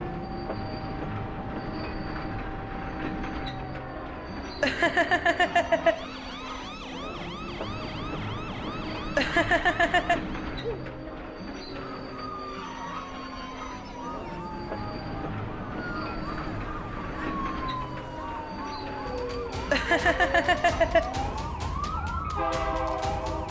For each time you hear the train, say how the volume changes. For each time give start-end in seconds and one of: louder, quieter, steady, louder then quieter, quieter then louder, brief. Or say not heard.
0.0-23.4 steady.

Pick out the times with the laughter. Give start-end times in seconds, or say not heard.
4.6-6.0, 9.2-10.2, 19.7-21.1.